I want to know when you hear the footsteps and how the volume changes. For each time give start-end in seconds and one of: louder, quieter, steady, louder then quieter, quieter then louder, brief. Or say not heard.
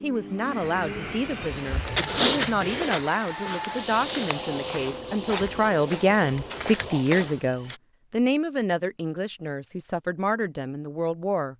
1.5-7.8 quieter then louder.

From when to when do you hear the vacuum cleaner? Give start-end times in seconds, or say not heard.
0.0-7.2.